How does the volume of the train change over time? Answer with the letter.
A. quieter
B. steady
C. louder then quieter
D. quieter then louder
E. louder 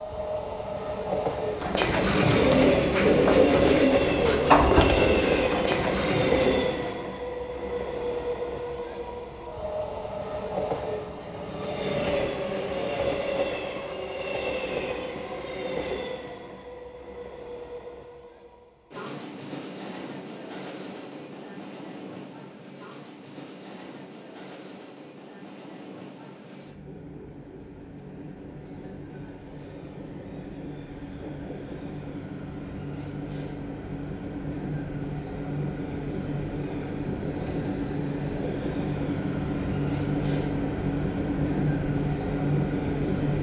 D.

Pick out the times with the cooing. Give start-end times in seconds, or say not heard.
1.5-7.0.